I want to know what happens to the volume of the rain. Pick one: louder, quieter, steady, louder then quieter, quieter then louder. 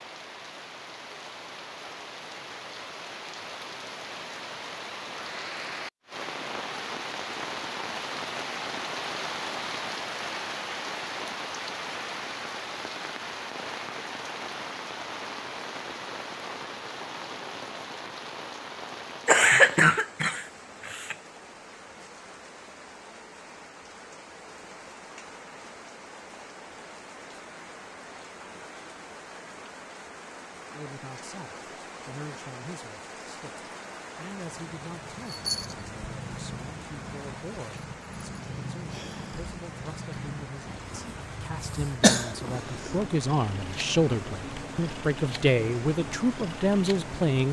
quieter.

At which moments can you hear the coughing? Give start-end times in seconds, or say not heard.
19.2-21.1, 42.0-42.9.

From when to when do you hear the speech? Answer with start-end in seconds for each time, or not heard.
30.7-47.4.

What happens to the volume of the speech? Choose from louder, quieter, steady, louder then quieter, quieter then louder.
louder.